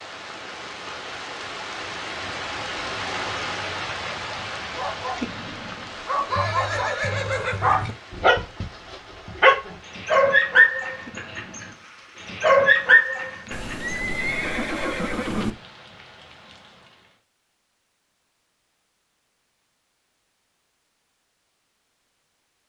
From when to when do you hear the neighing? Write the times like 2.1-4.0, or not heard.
6.2-8.0, 13.5-15.6.